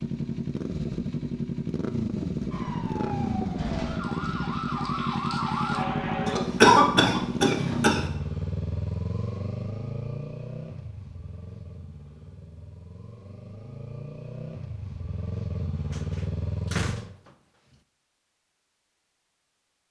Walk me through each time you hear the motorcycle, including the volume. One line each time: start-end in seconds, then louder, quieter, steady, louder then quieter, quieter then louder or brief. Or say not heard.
0.0-17.1 quieter then louder.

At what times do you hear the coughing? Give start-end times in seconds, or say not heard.
6.2-8.1.